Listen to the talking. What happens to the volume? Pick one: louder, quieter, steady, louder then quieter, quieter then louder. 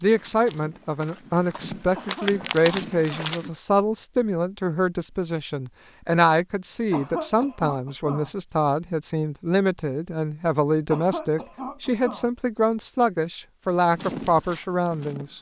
steady.